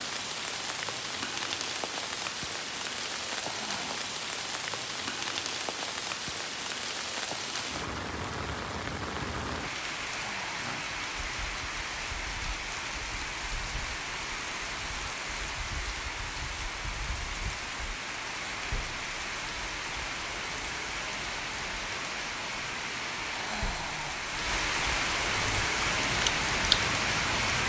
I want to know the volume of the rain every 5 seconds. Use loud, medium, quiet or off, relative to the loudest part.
medium, medium, medium, medium, medium, loud.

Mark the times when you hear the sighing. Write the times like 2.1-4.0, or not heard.
3.5-4.0, 10.2-10.8, 23.3-24.4.